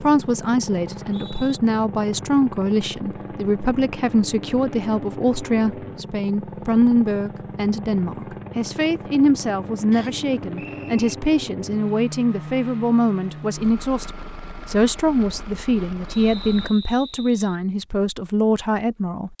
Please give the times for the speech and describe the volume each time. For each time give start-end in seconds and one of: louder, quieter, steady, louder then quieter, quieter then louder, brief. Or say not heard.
0.0-19.3 steady.